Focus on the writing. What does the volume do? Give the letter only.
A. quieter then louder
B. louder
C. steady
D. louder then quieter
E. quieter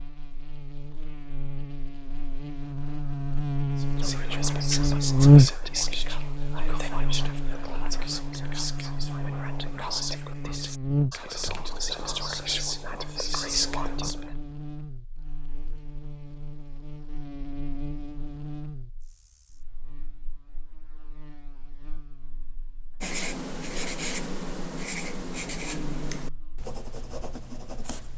E.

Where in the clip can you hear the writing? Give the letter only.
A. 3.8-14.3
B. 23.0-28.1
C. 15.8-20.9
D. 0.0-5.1
B.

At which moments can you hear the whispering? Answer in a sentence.
The whispering can be heard from 3.8 to 14.3 s.